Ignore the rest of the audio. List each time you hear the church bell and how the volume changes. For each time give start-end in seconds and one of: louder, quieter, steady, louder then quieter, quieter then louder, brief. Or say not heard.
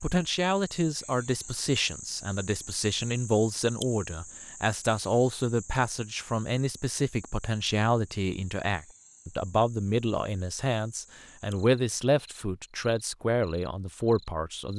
not heard.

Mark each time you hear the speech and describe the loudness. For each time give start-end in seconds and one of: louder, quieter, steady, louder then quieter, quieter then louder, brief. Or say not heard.
0.0-14.7 steady.